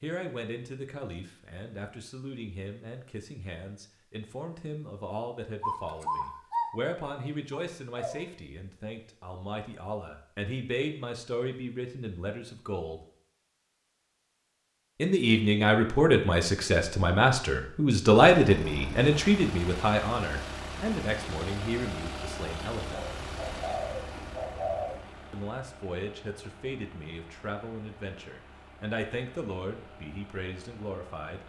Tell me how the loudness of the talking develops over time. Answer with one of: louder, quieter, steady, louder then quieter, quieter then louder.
louder then quieter.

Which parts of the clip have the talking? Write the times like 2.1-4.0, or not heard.
0.0-13.0, 14.9-23.1, 25.3-31.4.